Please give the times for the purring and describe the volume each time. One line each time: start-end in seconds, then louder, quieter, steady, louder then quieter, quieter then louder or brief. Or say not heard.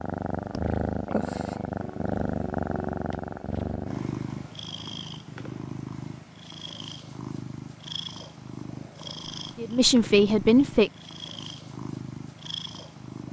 0.0-13.2 quieter.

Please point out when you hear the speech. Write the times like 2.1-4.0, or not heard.
9.4-10.9.